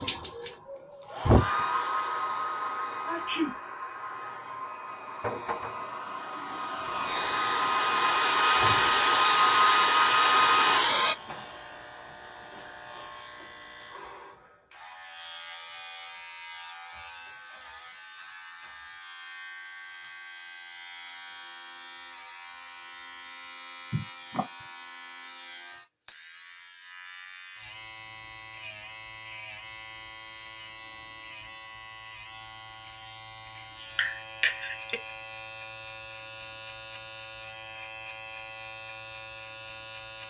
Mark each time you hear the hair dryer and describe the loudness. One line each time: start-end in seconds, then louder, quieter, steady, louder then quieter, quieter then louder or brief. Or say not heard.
0.0-11.2 quieter then louder.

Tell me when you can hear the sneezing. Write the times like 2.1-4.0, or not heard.
3.0-3.5, 23.9-24.4, 34.0-35.0.